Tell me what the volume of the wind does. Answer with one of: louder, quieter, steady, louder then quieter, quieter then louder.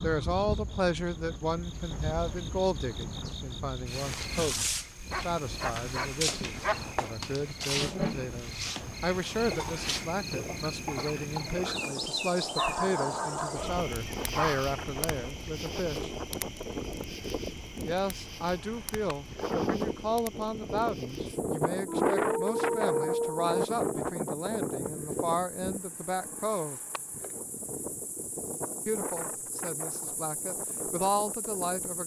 louder then quieter.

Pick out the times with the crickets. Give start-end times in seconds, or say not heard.
0.0-32.0.